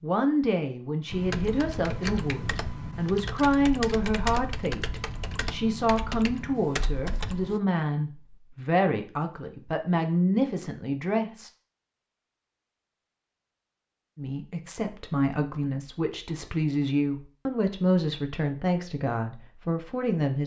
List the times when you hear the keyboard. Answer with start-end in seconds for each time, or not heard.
1.1-7.6.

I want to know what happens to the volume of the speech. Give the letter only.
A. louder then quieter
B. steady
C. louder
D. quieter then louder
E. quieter
B.